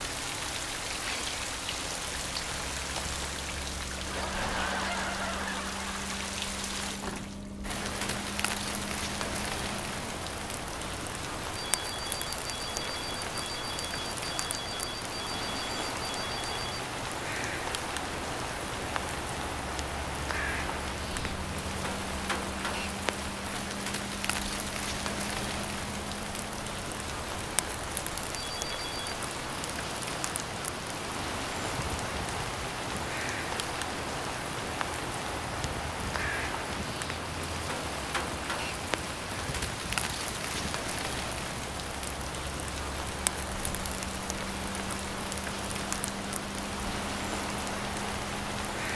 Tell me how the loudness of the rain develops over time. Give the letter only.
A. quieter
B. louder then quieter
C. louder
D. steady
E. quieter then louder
D.